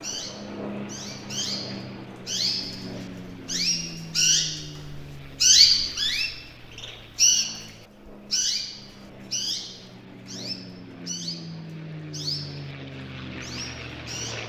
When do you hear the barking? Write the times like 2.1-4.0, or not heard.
not heard.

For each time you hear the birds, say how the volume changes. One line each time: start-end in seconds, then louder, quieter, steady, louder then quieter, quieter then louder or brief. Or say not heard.
0.0-12.7 louder then quieter
13.4-14.4 brief.